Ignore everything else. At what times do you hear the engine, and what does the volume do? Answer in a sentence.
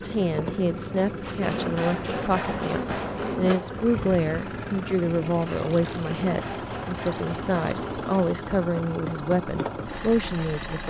The engine can be heard from 0.0 to 10.8 s, at a steady volume.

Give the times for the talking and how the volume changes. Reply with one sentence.
The talking can be heard from 0.0 to 10.8 s, at a steady volume.